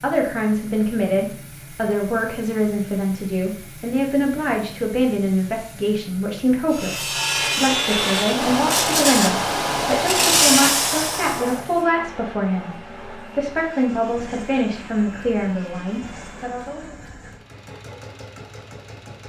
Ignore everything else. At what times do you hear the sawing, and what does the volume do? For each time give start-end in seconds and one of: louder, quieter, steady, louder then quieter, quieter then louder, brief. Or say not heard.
6.8-16.6 quieter.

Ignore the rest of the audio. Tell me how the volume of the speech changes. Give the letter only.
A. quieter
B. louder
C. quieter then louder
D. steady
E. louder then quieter
D.